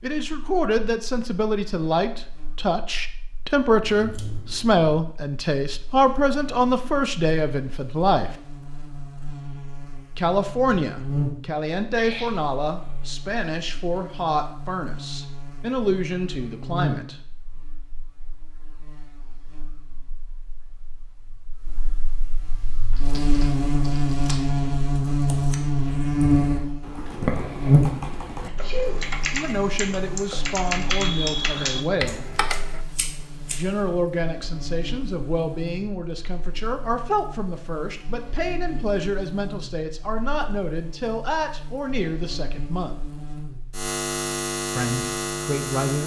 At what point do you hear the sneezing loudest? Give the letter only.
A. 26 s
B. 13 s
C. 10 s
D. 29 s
D.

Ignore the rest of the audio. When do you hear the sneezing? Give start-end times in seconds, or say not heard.
11.9-12.6, 28.4-29.0.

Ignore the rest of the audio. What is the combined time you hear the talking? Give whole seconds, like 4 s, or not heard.
29 s.